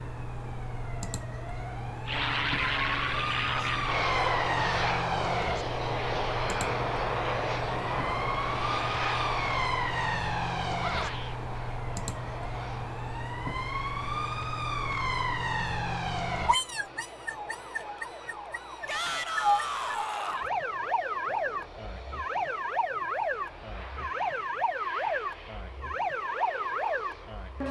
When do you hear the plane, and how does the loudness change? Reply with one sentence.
The plane can be heard from 2.0 to 27.6 s, getting quieter.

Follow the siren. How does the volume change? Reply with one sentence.
The loudness of the siren stays about the same.